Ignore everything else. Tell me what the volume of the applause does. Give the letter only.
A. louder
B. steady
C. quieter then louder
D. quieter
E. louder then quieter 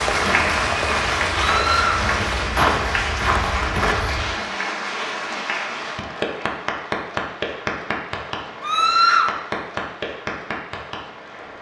D.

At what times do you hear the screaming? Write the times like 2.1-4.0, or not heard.
1.4-2.0, 8.6-9.3.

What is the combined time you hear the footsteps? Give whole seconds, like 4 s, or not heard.
4 s.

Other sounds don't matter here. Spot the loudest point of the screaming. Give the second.
9 s.